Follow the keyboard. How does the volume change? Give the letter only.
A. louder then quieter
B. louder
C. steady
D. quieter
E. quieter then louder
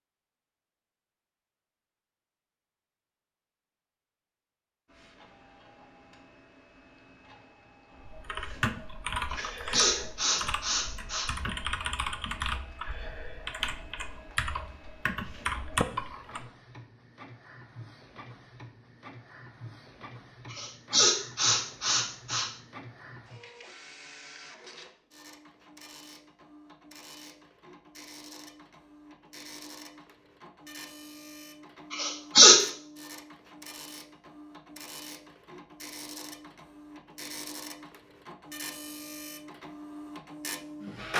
E.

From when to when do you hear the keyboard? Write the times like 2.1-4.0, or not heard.
8.0-16.4.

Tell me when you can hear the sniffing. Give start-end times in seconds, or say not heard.
9.3-11.3, 20.5-22.4, 31.9-32.6.